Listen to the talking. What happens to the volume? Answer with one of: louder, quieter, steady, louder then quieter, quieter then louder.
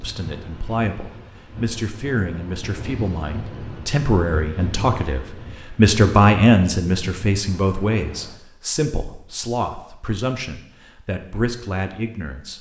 louder then quieter.